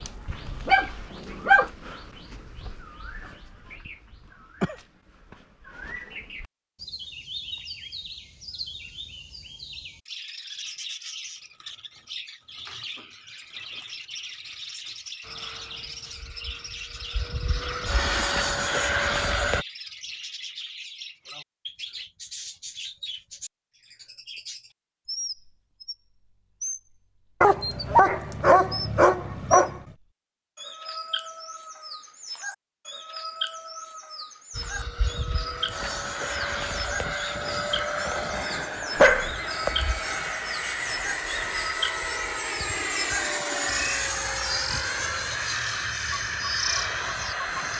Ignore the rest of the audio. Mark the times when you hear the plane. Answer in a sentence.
The plane can be heard from 15.2 to 19.6 s and from 34.5 to 47.7 s.